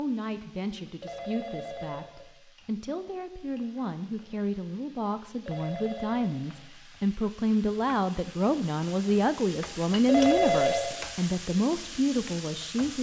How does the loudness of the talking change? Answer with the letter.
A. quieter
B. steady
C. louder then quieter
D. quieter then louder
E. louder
E.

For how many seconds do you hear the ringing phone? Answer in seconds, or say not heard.
3 s.